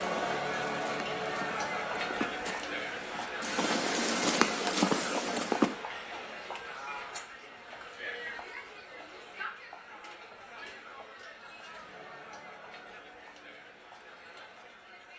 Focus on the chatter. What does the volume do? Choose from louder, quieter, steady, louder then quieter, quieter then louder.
quieter.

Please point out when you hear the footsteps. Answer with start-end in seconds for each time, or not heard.
0.0-5.8.